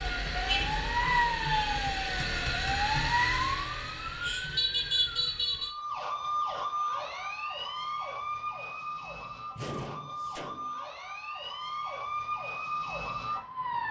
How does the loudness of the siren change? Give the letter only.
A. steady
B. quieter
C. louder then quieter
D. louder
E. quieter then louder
B.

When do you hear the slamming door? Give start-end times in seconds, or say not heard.
9.6-10.8.